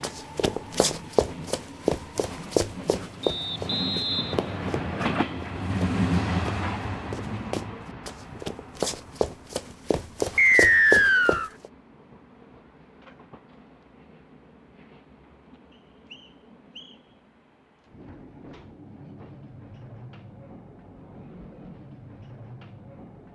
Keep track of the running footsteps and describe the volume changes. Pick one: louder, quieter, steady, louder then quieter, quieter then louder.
quieter then louder.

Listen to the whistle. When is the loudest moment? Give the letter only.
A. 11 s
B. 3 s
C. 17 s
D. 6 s
A.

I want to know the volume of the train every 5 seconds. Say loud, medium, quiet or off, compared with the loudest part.
medium, loud, quiet, quiet, quiet.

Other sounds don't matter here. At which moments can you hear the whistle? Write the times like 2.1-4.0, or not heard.
3.2-5.2, 10.3-11.5, 15.7-17.0.